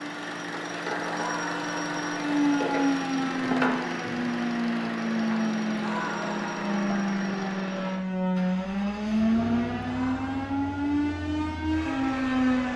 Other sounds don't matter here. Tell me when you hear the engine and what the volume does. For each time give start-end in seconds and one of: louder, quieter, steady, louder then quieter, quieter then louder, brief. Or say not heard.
0.0-12.7 quieter.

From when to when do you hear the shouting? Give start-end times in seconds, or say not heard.
1.0-2.0, 5.8-6.8, 9.8-10.4.